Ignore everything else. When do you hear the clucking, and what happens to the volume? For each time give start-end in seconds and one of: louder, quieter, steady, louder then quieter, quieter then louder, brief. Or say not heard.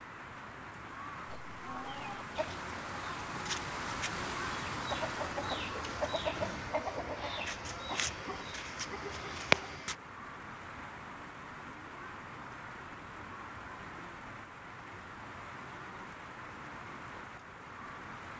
1.5-9.9 louder.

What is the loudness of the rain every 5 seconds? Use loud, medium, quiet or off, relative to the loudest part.
loud, loud, medium, medium.